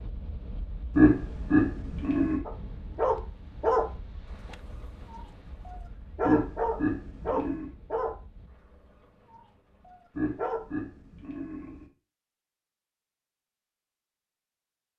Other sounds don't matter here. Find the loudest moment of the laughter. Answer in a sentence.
The loudest moment of the laughter is at 1 second.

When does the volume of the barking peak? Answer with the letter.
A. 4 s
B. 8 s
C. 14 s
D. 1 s
A.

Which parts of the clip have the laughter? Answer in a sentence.
The laughter can be heard from 0.9 to 2.4 s, from 6.2 to 7.7 s and from 10.2 to 11.8 s.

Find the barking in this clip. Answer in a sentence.
You can hear the barking from 2.5 to 10.6 s.